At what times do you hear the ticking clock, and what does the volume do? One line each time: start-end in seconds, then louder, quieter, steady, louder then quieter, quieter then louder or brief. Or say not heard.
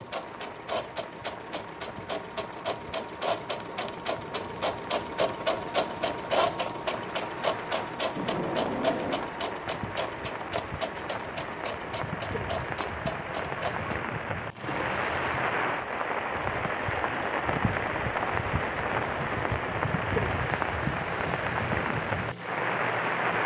not heard.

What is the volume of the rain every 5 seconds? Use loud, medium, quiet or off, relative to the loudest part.
quiet, quiet, medium, loud, loud.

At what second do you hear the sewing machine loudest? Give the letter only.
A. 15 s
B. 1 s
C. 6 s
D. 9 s
C.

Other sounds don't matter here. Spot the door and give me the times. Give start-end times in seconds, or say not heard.
8.2-9.3.